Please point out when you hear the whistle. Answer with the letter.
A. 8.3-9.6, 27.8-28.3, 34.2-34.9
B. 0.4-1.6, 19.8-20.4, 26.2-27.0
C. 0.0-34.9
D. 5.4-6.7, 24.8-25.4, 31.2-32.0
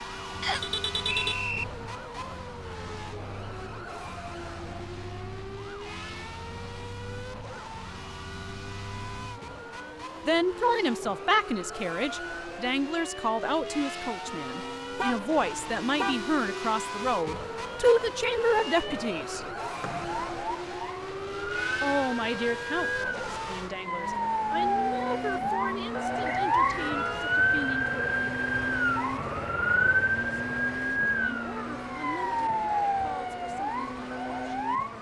B.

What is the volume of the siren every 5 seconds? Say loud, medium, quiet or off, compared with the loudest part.
quiet, quiet, quiet, quiet, medium, loud, loud.